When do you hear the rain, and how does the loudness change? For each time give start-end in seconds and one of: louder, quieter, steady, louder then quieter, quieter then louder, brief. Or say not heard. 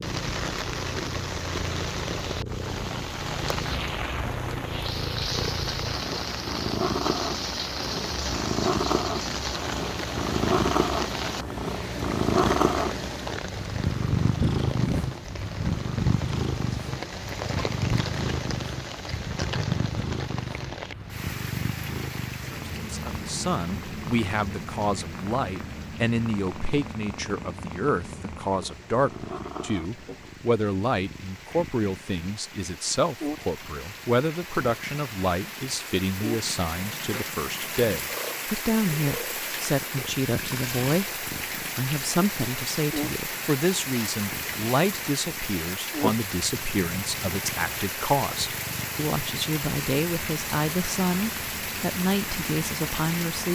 0.0-53.5 quieter then louder.